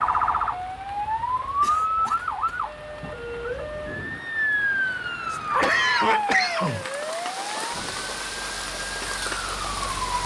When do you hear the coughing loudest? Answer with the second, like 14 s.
6 s.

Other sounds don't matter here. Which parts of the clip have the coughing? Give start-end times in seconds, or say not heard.
1.1-2.6, 5.3-6.8.